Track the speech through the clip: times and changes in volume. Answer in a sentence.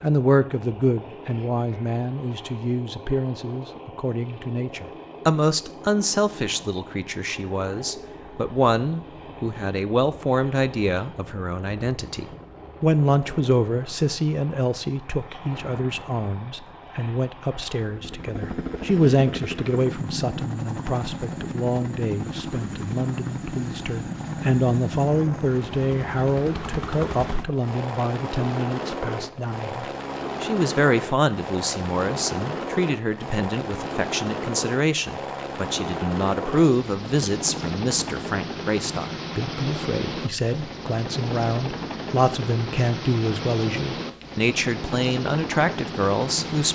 The speech can be heard from 0.0 to 46.7 s, at a steady volume.